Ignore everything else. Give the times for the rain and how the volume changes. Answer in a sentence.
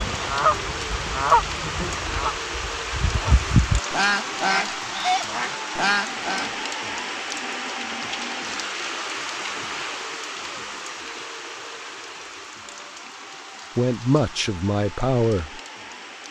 You can hear the rain from 0.0 to 16.2 s, getting quieter.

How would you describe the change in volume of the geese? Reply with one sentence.
The volume of the geese goes down, then up.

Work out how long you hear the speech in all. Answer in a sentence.
The speech can be heard for 2 seconds in total.